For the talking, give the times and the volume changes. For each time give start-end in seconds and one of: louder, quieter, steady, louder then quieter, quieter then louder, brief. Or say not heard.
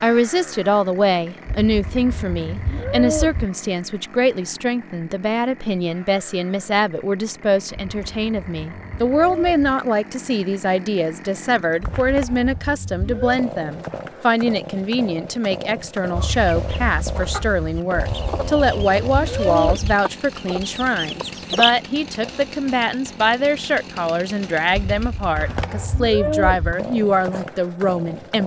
0.0-28.4 steady.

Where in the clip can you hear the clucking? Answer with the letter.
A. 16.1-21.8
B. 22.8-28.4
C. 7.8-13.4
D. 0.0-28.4
A.